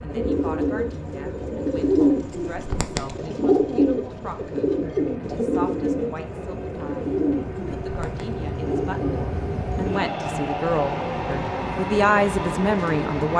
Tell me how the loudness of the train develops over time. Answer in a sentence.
The volume of the train goes up.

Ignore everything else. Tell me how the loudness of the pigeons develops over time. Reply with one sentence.
The loudness of the pigeons goes down.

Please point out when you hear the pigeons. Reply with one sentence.
The pigeons can be heard from 0.1 to 10.1 s.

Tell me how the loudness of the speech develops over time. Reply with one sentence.
The volume of the speech goes up.